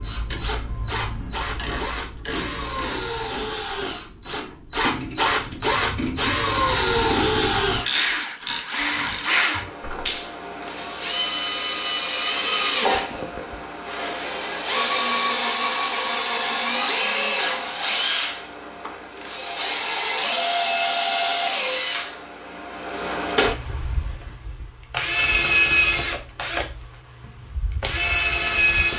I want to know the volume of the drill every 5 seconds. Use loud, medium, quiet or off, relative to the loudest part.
medium, loud, loud, loud, loud, loud.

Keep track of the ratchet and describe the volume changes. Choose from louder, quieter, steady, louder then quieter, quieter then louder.
louder.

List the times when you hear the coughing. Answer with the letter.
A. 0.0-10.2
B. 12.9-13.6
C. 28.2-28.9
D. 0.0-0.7
B.